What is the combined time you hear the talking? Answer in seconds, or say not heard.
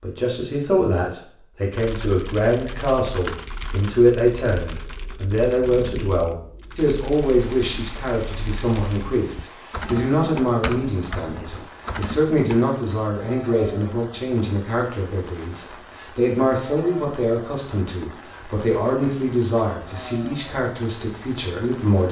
22 s.